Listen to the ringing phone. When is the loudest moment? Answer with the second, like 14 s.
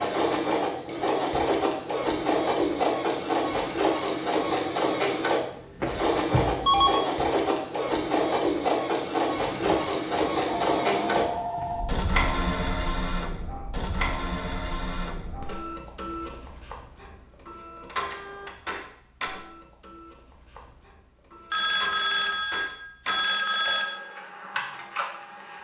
7 s.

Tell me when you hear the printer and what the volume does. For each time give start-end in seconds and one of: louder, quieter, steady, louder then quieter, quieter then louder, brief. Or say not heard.
0.0-25.6 quieter.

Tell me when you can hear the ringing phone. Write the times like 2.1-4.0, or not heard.
5.8-7.0, 9.4-11.9, 21.5-24.0.